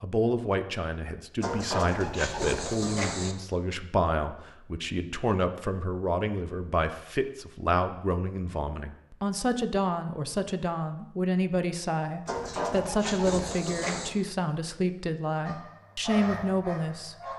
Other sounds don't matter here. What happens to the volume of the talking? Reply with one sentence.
The volume of the talking stays about the same.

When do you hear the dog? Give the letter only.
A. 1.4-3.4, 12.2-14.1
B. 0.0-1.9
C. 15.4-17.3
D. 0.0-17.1
C.